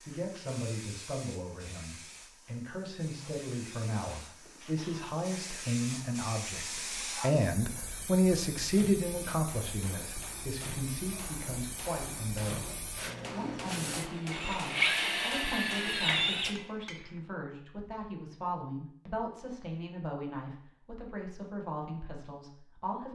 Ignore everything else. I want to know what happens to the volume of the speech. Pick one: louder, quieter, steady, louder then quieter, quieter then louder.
louder then quieter.